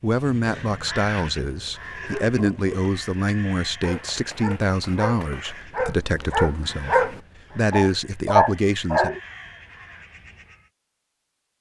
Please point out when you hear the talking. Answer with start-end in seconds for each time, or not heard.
0.0-9.2.